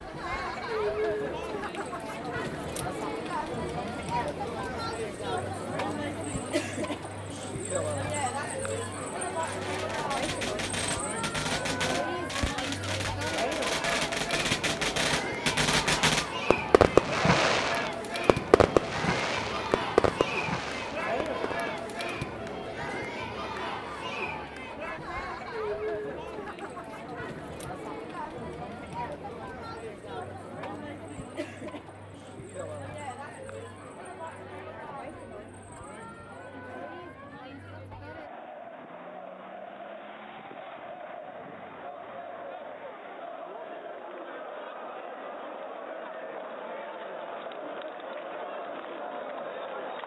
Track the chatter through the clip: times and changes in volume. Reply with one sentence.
You can hear the chatter from 0.0 to 50.0 s, getting quieter.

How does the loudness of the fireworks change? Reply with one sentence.
The loudness of the fireworks goes up, then down.